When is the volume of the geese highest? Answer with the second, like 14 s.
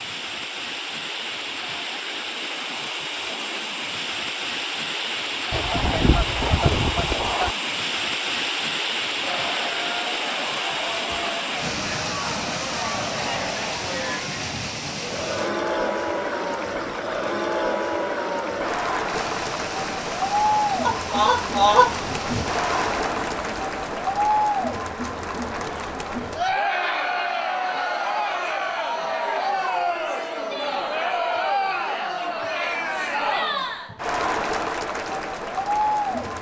22 s.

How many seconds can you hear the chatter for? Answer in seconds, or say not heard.
27 s.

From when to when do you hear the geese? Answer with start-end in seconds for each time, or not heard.
5.5-7.5, 20.9-22.4.